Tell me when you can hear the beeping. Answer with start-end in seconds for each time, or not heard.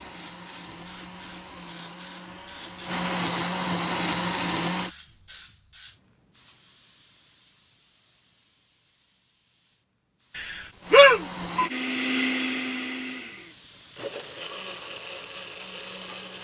10.3-11.7.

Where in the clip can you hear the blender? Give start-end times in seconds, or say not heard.
0.0-4.9, 10.8-16.3.